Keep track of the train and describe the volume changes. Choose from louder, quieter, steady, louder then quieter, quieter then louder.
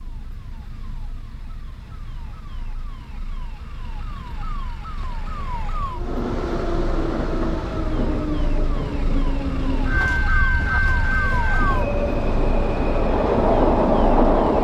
louder.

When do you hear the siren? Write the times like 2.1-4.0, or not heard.
0.0-14.5.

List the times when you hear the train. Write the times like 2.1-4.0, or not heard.
5.9-14.5.